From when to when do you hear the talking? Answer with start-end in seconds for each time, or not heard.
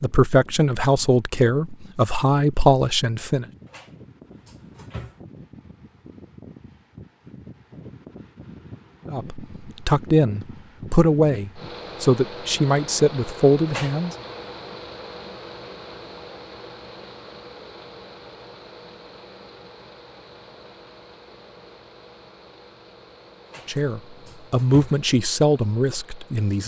0.0-3.5, 9.1-14.2, 23.6-26.6.